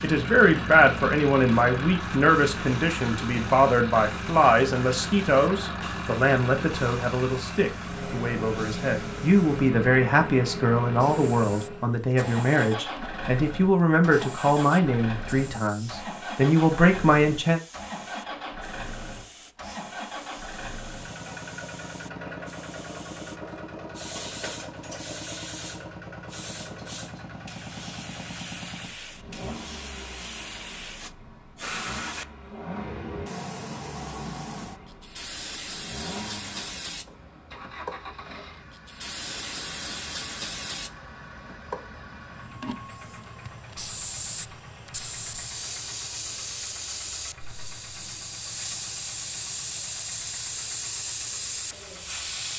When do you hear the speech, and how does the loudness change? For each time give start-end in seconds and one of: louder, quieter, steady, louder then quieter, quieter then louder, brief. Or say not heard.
0.0-17.6 steady.